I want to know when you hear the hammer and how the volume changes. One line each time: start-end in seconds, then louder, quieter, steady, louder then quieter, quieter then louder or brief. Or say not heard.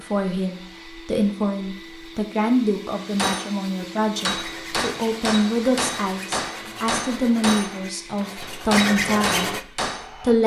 3.1-10.2 steady.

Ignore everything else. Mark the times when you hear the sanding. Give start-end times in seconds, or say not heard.
4.1-9.7.